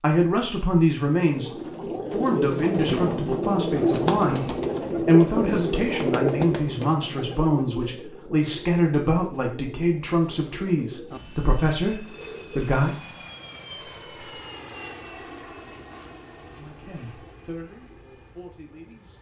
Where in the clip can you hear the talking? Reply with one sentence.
You can hear the talking from 0.0 to 12.9 s and from 16.4 to 19.1 s.